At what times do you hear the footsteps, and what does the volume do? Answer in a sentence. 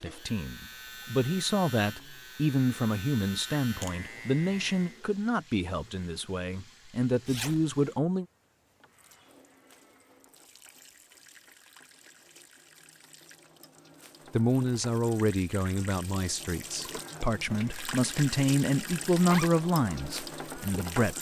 You can't hear the footsteps here.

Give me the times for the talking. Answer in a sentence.
The talking can be heard from 0.0 to 8.2 s and from 14.3 to 21.1 s.